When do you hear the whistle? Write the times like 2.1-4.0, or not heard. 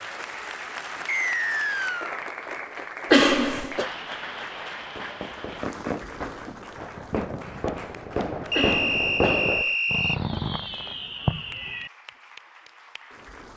1.1-2.2, 8.5-10.2.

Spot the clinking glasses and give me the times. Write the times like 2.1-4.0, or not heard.
not heard.